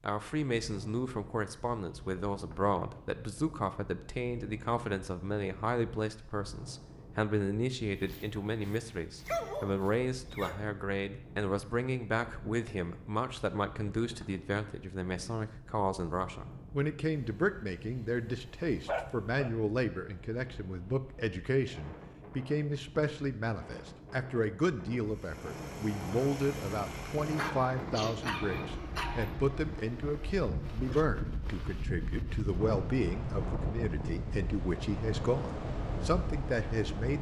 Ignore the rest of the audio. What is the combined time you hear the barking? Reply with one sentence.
You can hear the barking for 7 seconds altogether.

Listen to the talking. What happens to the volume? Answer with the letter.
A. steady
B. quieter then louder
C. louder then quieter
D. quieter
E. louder
A.